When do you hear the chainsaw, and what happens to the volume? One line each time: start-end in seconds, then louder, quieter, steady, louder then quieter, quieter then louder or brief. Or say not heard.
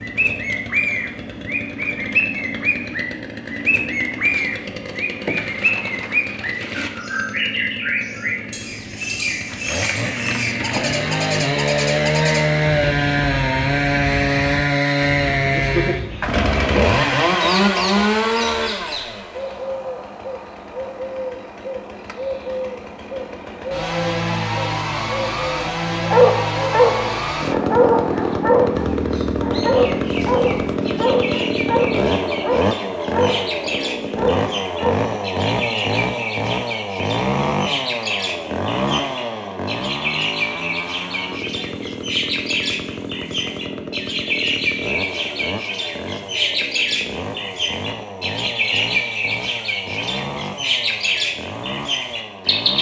0.0-52.7 louder then quieter.